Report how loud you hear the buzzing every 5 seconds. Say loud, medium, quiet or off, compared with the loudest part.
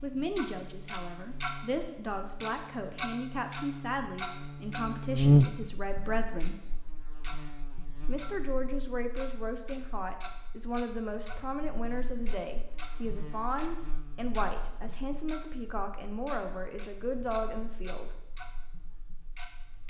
quiet, loud, quiet, quiet.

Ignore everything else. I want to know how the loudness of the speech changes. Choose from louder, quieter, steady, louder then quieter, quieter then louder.
steady.